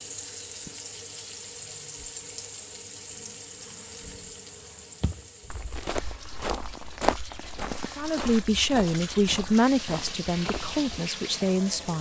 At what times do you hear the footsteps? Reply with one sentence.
The footsteps can be heard from 5.0 to 10.8 s.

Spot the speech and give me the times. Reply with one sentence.
The speech can be heard from 8.0 to 11.9 s.